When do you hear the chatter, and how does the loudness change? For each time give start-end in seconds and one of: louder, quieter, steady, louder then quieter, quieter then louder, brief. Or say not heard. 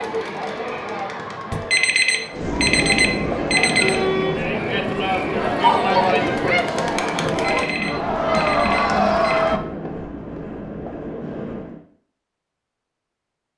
0.0-9.6 louder.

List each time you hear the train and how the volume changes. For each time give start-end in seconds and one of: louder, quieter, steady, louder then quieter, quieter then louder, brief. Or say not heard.
2.3-11.8 quieter.